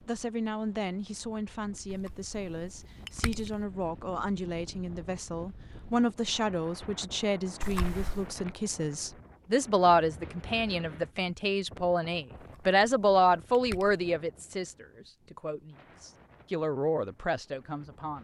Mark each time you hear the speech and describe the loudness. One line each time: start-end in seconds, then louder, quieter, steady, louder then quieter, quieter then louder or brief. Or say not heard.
0.1-18.2 louder then quieter.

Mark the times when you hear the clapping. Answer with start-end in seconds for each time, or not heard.
not heard.